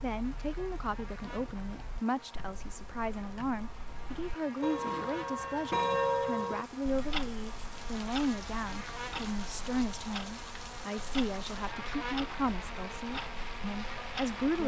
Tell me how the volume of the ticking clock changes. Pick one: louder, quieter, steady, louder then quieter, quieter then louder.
louder then quieter.